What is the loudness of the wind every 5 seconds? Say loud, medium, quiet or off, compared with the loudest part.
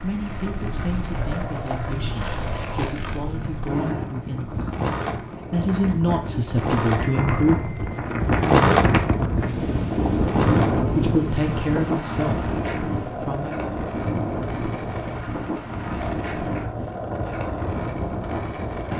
medium, loud, loud, medium.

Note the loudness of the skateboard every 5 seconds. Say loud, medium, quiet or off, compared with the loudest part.
medium, loud, medium, medium.